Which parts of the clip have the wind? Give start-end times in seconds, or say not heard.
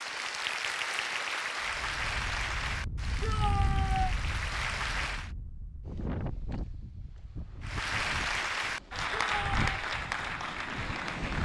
1.6-11.4.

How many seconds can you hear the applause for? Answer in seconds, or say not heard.
9 s.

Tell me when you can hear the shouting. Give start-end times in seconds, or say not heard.
3.2-4.2, 9.2-9.7.